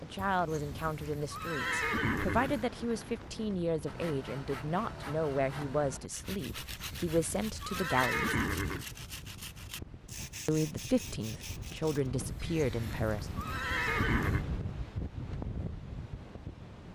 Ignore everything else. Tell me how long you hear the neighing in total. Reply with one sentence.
The neighing can be heard for 7 seconds in total.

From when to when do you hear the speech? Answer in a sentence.
The speech can be heard from 0.0 to 8.4 s and from 10.4 to 13.3 s.